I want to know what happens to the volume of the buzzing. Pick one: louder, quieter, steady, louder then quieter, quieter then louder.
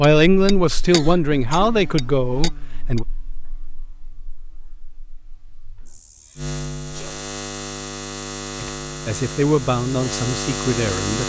quieter then louder.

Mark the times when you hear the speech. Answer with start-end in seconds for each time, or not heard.
0.0-3.0, 8.6-11.2.